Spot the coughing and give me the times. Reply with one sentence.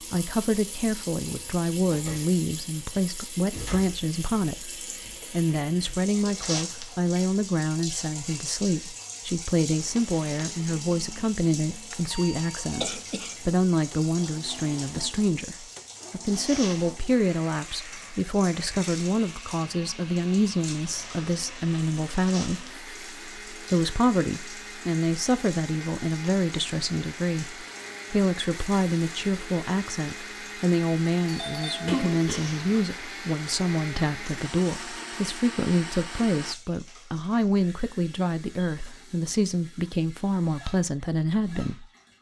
You can hear the coughing from 12.8 to 13.3 s and from 31.9 to 32.9 s.